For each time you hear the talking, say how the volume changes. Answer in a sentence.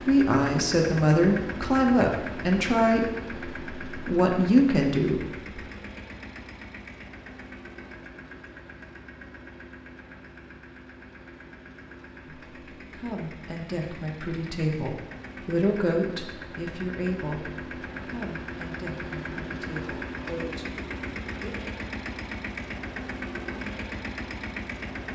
You can hear the talking from 0.1 to 5.5 s, getting quieter then louder; and from 12.2 to 21.7 s, getting louder then quieter.